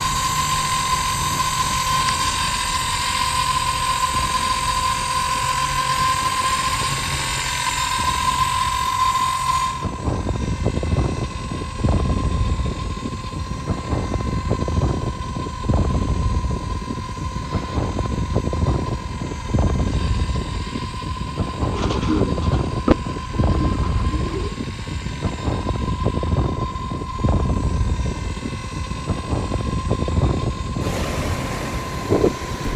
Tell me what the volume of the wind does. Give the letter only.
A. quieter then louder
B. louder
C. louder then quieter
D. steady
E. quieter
B.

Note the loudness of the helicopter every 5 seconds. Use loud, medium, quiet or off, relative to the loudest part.
loud, loud, quiet, quiet, quiet, quiet, quiet.